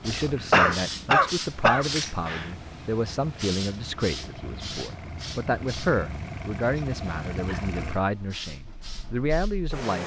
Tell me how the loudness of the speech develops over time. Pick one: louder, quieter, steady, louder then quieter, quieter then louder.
steady.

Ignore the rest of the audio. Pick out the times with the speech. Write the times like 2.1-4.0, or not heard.
0.0-10.0.